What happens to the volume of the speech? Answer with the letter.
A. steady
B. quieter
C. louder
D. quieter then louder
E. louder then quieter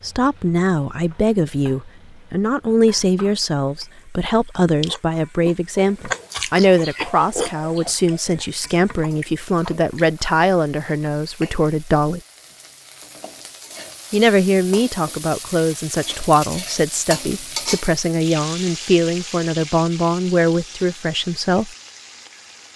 A.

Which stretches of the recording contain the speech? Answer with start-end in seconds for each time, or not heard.
0.0-12.2, 14.1-21.7.